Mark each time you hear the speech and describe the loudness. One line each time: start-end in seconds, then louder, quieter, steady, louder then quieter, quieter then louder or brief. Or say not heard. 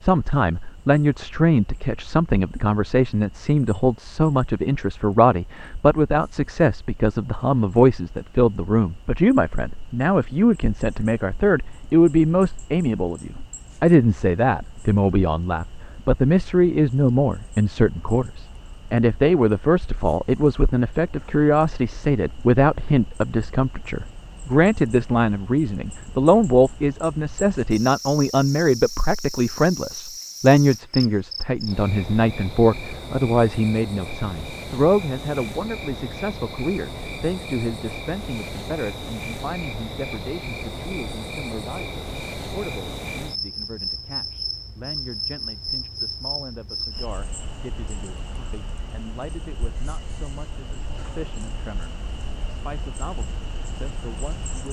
0.0-54.6 quieter.